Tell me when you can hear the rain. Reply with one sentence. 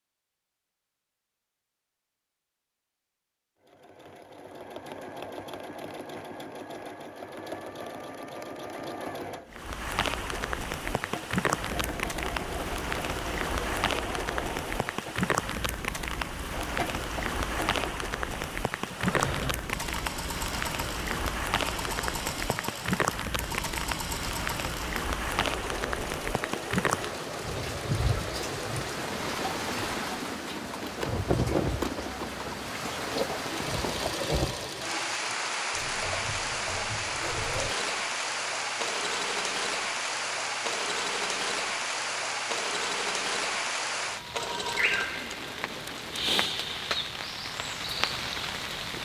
You can hear the rain from 9.5 to 49.0 s.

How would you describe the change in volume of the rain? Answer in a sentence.
The loudness of the rain stays about the same.